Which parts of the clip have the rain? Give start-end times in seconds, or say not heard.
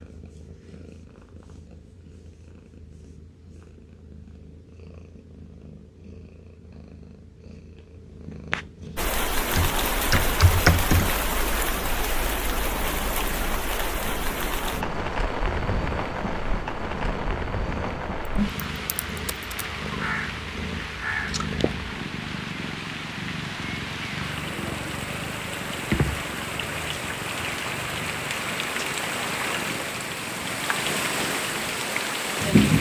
8.9-32.7.